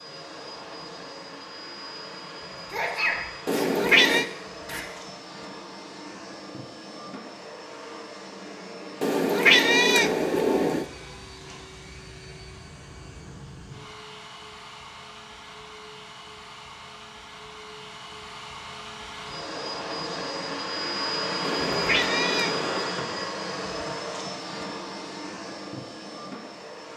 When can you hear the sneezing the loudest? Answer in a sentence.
The loudest moment of the sneezing is at 3 seconds.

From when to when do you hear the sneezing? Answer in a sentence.
The sneezing can be heard from 2.5 to 4.8 s.